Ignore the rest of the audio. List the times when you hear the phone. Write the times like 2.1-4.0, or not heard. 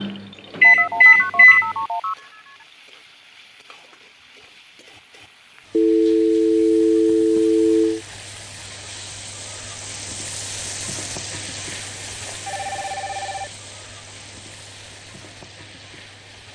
0.6-2.6, 5.7-8.0, 12.4-13.5.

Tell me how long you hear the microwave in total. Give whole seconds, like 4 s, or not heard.
2 s.